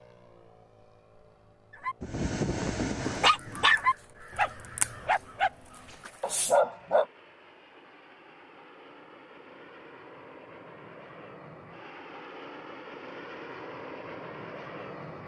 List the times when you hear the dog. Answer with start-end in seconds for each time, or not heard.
1.7-7.0.